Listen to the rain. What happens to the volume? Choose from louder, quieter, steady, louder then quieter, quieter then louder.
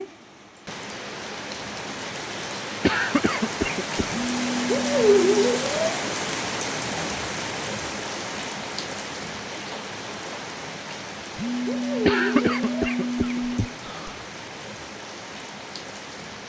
louder then quieter.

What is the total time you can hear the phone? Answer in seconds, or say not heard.
4 s.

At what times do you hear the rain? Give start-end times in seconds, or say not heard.
0.0-16.4.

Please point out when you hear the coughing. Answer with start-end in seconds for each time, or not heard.
2.8-4.2, 12.1-14.2.